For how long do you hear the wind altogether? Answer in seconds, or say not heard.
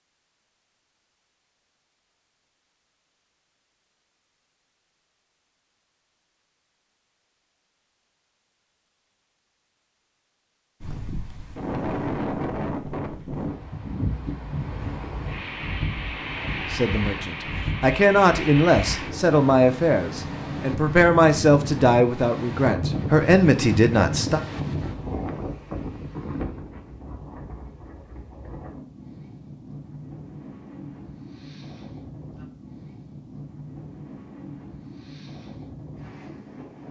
26 s.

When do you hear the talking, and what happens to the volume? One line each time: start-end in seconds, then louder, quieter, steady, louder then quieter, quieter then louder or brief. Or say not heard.
16.4-24.4 steady.